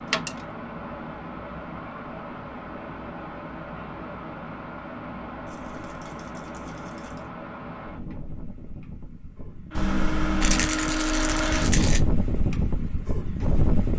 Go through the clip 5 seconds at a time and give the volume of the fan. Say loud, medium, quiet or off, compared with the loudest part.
medium, medium, loud.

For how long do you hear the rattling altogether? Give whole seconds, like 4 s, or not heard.
4 s.